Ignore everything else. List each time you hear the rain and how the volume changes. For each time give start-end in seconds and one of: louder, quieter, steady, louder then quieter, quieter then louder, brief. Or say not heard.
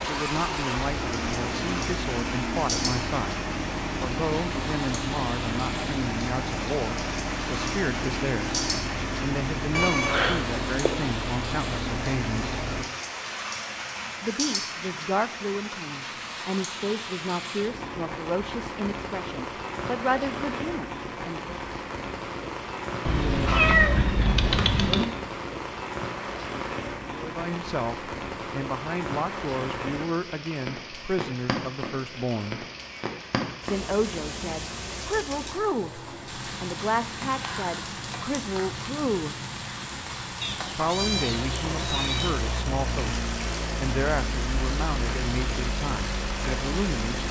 0.0-47.2 steady.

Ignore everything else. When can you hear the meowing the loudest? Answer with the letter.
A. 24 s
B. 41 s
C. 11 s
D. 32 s
A.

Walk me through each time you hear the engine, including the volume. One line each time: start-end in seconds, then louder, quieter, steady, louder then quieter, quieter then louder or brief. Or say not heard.
0.0-12.9 steady
41.0-47.2 steady.